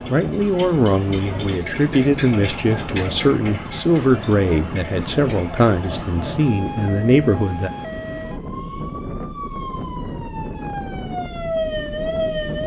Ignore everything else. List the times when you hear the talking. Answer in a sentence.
You can hear the talking from 0.1 to 7.7 s.